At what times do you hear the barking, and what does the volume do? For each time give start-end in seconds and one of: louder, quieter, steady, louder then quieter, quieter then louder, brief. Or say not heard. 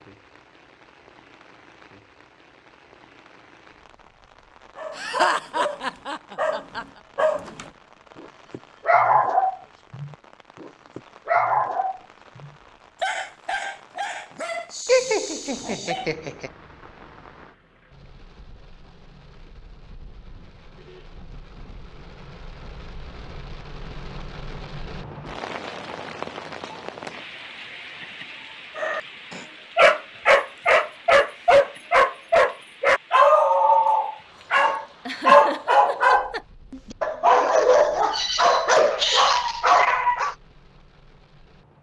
4.8-16.1 louder then quieter
28.8-40.4 steady.